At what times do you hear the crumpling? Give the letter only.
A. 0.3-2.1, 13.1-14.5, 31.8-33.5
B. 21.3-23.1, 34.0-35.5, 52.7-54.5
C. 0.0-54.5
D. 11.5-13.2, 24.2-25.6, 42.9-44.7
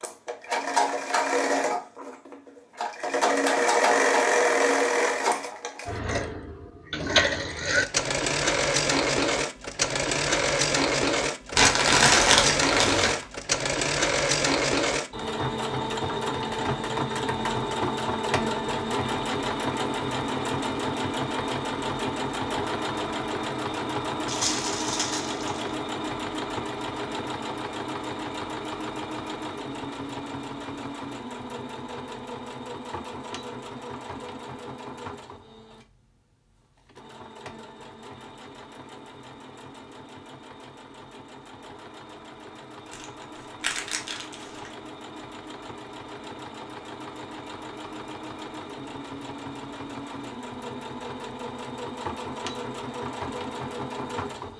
D.